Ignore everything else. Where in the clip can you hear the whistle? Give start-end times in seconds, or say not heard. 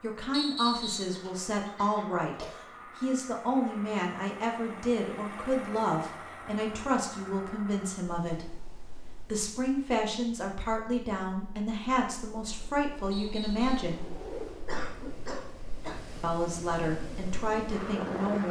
0.3-1.1, 13.1-13.7.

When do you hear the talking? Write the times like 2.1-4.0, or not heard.
0.0-14.0, 16.2-18.4.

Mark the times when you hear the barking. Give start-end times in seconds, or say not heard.
not heard.